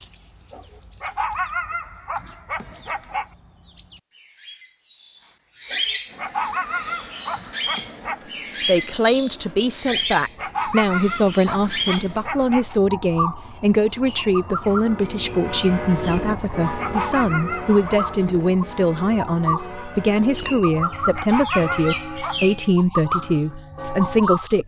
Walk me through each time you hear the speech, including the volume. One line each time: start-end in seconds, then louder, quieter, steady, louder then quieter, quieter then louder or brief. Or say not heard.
8.7-24.6 steady.